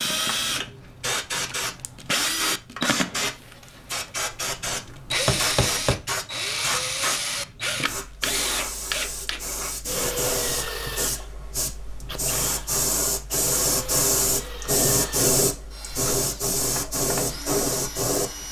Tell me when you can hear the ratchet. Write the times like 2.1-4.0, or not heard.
not heard.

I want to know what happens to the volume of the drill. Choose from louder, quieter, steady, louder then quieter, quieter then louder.
quieter.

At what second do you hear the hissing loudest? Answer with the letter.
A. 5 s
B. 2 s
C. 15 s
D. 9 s
C.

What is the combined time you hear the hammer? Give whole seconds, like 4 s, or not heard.
2 s.